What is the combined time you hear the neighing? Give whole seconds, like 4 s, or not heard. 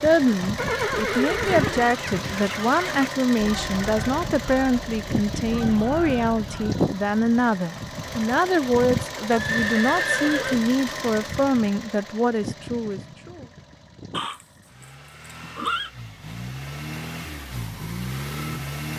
5 s.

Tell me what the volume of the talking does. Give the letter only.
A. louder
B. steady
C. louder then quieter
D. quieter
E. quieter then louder
B.